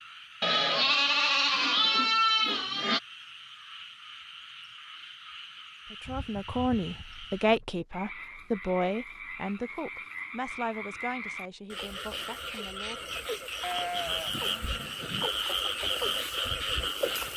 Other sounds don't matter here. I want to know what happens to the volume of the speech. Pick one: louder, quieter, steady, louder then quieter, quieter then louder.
quieter.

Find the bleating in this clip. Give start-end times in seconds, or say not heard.
0.4-3.0, 6.0-7.7, 13.6-15.3.